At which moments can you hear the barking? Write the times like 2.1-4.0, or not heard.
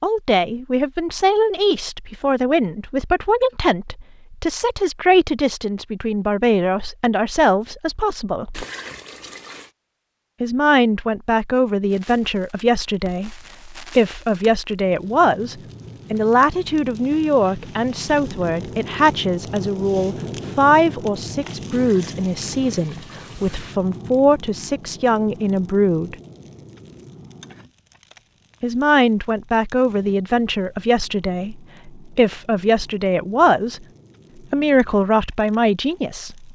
not heard.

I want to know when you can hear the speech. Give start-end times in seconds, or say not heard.
0.0-8.7, 10.4-26.1, 28.6-33.8, 34.5-36.5.